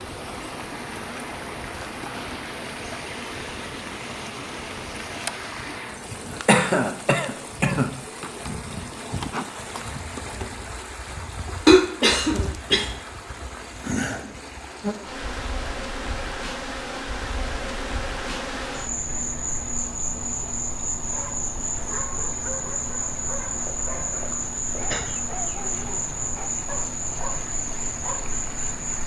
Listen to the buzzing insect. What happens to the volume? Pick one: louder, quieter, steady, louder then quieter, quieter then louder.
louder.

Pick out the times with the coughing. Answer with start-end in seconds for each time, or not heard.
6.5-7.9, 11.7-12.9, 23.6-25.1.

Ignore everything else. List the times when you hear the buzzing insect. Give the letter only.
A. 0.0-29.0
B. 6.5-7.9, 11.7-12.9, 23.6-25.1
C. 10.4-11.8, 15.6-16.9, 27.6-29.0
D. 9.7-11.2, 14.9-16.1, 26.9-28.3
A.